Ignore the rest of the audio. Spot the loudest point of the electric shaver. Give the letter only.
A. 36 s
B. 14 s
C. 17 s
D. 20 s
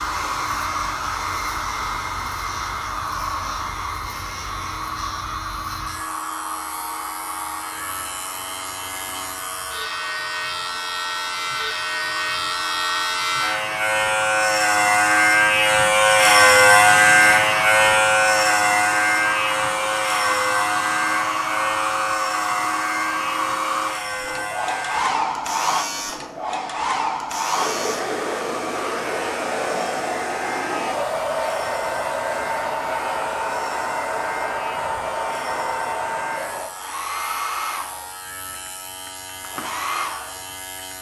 C.